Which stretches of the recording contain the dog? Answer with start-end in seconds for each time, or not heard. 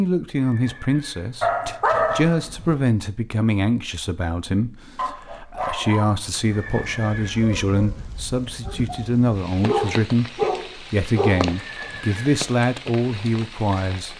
1.4-2.7, 5.0-6.2, 9.7-12.0.